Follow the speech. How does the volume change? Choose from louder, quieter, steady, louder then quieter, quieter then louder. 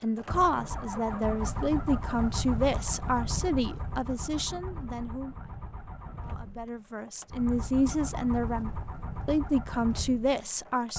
quieter then louder.